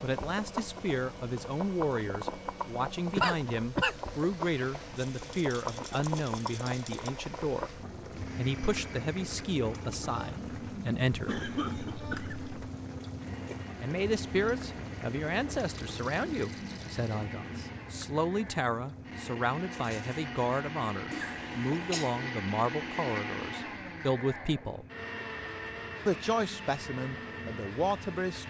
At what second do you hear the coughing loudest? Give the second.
3 s.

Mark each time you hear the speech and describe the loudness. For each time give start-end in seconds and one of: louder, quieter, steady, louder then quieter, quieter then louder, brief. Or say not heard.
0.0-11.4 steady
13.8-24.9 steady
26.1-28.4 brief.